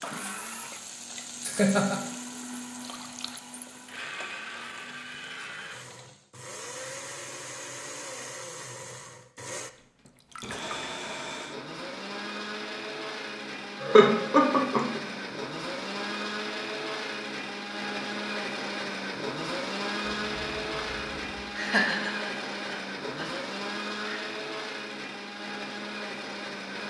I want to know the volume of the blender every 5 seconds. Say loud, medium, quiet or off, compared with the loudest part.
medium, medium, loud, loud, loud, loud.